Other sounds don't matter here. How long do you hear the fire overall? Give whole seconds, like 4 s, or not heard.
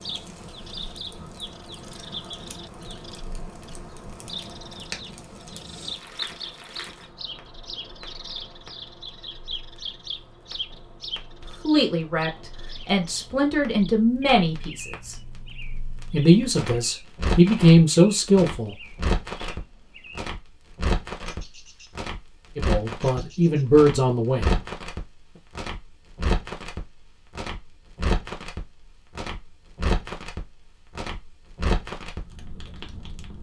33 s.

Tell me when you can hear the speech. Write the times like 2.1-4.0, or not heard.
11.4-15.2, 16.1-18.9, 22.6-24.6.